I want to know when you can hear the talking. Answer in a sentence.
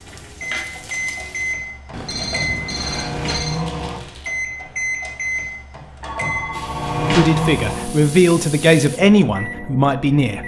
The talking can be heard from 7.0 to 10.4 s.